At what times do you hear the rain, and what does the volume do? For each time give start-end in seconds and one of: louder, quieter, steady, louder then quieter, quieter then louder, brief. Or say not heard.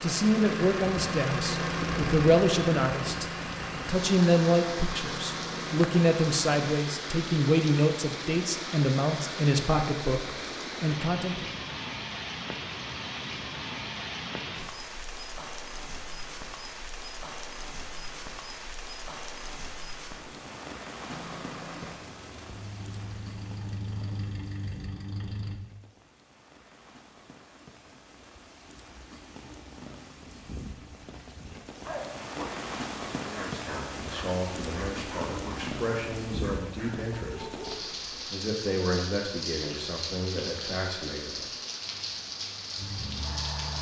0.0-43.7 quieter then louder.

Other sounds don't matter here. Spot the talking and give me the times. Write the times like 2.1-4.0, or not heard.
0.0-11.5, 33.2-41.5.